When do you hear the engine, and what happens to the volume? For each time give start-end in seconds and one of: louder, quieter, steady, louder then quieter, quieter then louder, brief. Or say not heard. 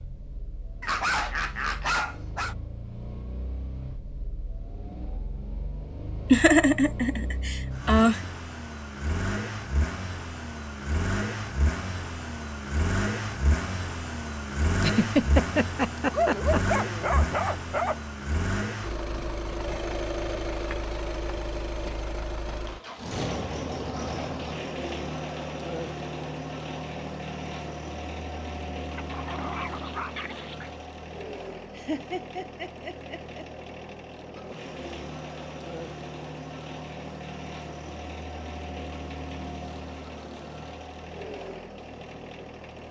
0.0-42.8 louder then quieter.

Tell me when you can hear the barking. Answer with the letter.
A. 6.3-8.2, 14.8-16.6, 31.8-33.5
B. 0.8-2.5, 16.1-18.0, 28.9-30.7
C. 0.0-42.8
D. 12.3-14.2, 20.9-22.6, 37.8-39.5
B.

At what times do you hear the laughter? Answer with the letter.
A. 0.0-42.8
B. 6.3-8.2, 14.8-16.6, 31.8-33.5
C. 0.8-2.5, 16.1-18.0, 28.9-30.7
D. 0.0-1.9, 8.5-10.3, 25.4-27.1
B.